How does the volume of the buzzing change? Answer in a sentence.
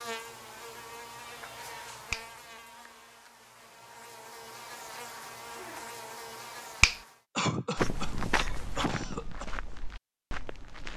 The volume of the buzzing goes down, then up.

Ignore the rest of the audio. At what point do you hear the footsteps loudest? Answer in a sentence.
The loudest moment of the footsteps is at 8 seconds.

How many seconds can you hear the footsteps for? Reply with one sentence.
You can hear the footsteps for 3 seconds altogether.